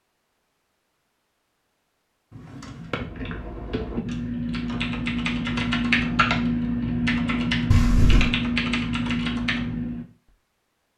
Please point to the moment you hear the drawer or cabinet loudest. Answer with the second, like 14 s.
8 s.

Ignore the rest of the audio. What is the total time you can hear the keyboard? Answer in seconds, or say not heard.
7 s.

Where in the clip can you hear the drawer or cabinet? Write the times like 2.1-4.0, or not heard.
2.3-3.0, 7.7-8.3.